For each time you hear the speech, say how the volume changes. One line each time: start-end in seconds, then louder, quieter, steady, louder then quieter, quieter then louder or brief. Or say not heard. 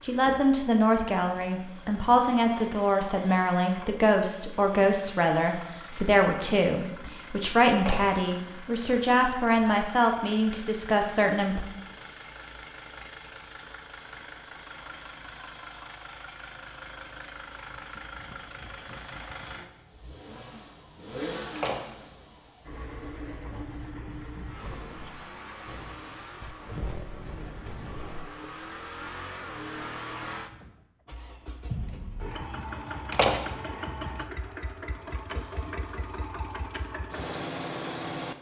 0.0-11.7 steady.